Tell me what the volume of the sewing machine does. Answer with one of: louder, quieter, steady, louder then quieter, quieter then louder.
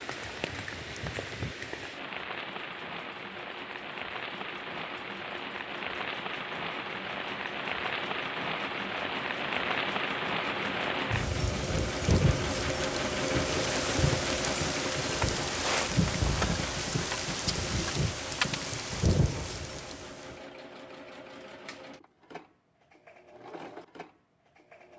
louder then quieter.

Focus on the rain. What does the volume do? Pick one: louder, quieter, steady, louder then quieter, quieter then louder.
louder.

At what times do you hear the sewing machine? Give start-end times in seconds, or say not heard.
0.0-24.9.